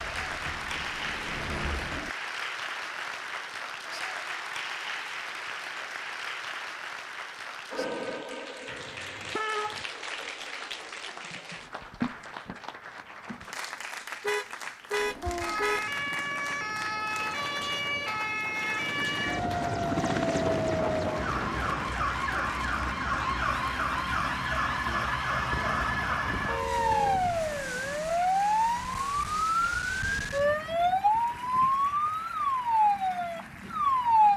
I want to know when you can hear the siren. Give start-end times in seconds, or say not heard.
15.2-34.3.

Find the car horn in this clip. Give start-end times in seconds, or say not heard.
8.7-9.8, 14.2-15.8, 25.5-27.2.